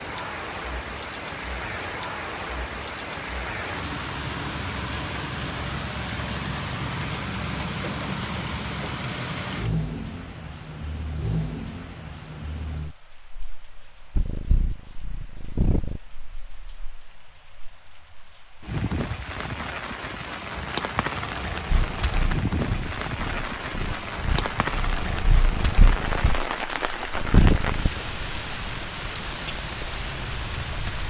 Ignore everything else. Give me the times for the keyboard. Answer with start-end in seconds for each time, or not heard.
not heard.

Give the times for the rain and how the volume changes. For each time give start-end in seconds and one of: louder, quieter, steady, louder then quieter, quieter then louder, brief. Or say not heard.
0.0-31.0 quieter then louder.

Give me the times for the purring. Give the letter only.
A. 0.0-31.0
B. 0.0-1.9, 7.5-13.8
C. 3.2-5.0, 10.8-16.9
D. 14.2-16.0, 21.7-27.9
D.